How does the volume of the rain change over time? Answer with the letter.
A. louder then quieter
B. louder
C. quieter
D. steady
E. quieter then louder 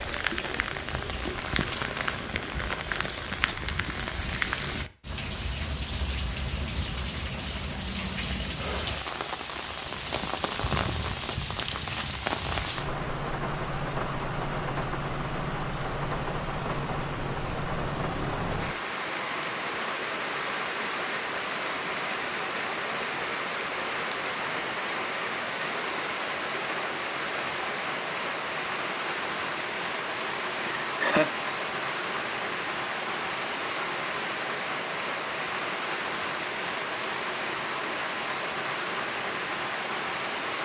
D.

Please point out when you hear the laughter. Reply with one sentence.
You can hear the laughter from 30.6 to 31.4 s.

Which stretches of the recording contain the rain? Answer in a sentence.
The rain can be heard from 0.0 to 40.5 s.